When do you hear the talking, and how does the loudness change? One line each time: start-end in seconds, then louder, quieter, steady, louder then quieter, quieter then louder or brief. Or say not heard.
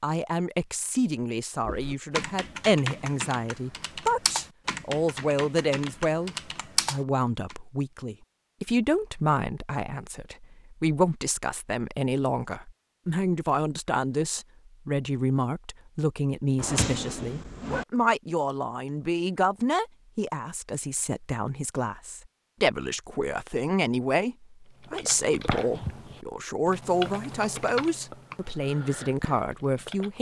0.0-30.1 steady.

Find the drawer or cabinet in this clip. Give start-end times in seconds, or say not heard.
16.6-17.9.